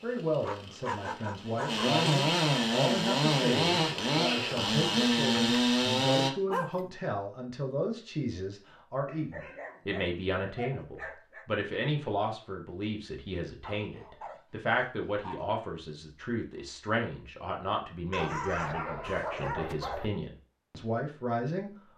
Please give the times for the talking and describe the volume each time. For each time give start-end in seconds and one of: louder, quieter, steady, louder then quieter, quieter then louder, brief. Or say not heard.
0.0-21.8 steady.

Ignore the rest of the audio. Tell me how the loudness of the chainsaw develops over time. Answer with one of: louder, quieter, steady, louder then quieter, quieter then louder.
louder.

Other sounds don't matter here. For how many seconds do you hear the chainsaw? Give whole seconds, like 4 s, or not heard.
6 s.